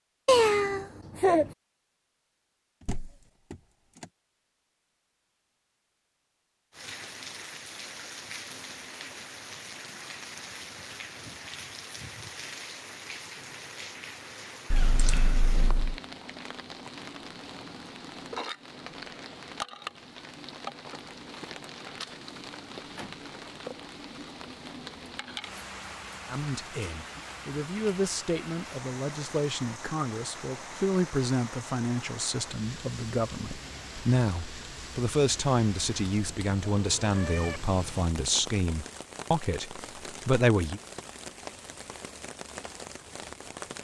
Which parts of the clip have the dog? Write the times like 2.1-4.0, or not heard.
not heard.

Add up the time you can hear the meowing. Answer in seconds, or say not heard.
4 s.